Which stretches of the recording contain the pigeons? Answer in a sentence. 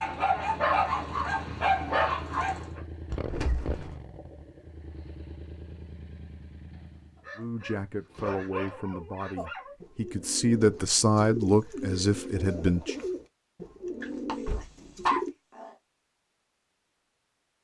You can hear the pigeons from 9.3 to 15.3 s.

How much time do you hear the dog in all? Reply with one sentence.
You can hear the dog for 7 seconds altogether.